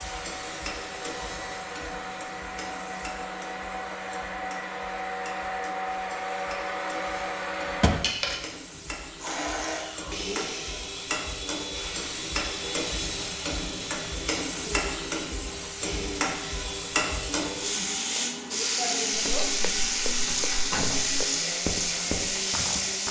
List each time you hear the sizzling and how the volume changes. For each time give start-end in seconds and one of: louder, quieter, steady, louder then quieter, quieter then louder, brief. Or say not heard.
0.0-23.0 louder.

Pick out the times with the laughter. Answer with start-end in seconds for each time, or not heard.
not heard.